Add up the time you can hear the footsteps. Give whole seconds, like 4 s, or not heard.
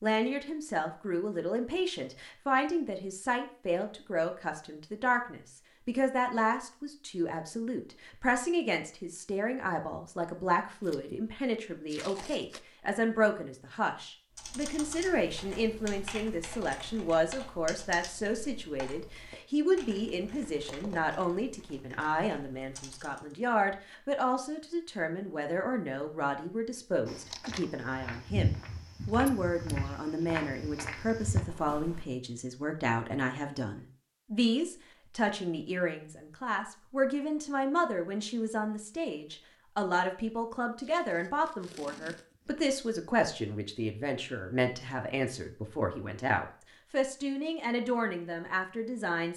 5 s.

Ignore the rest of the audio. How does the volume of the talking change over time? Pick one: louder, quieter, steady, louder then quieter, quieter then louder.
steady.